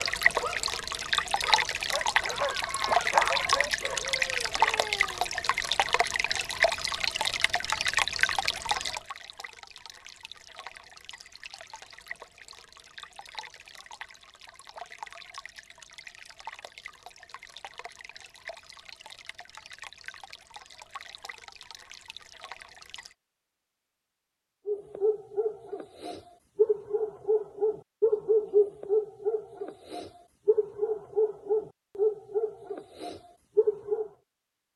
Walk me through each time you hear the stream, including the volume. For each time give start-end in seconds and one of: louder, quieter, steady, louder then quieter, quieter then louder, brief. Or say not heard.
0.0-23.1 quieter.